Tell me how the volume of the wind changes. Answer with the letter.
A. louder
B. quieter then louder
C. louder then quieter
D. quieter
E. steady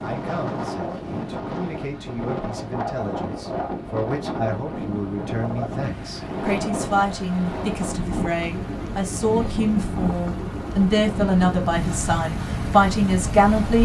E.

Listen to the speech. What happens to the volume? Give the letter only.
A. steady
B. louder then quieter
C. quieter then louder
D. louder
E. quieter
D.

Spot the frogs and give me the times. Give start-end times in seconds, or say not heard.
not heard.